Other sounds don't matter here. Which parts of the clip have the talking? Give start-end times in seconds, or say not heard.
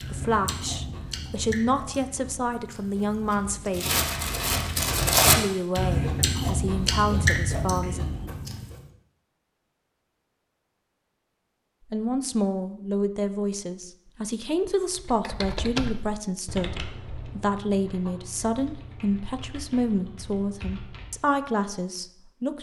0.0-3.9, 5.3-8.0, 11.9-22.5.